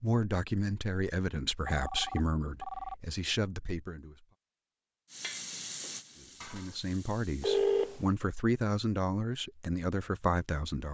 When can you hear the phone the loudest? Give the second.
8 s.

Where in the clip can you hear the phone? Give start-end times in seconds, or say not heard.
1.6-3.0, 7.4-8.0.